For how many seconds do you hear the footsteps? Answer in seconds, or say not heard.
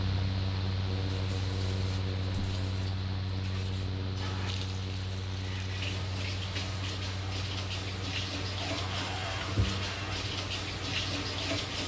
not heard.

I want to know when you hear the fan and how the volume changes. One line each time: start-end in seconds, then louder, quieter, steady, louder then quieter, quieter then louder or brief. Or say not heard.
0.0-11.8 quieter.